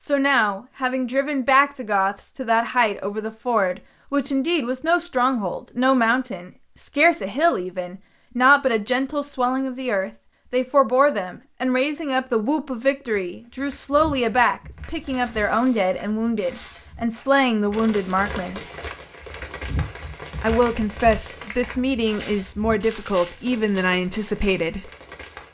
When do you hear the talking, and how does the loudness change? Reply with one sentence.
The talking can be heard from 0.1 to 18.6 s, at a steady volume; and from 20.4 to 24.9 s, at a steady volume.